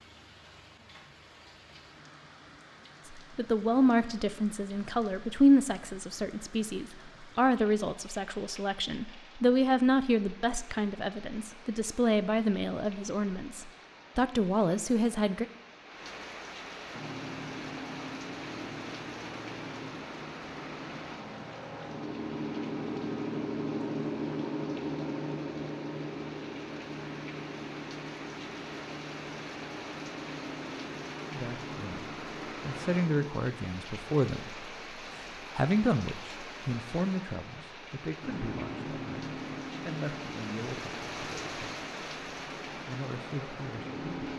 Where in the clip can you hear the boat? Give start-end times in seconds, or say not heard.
16.9-33.3, 38.2-44.3.